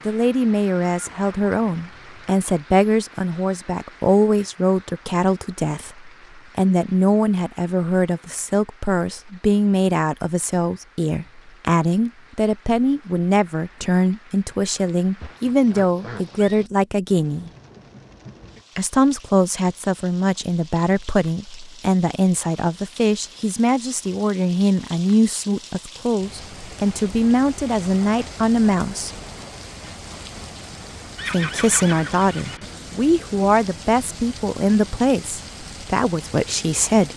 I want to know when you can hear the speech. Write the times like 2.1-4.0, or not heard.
0.1-17.5, 18.8-29.1, 31.2-37.1.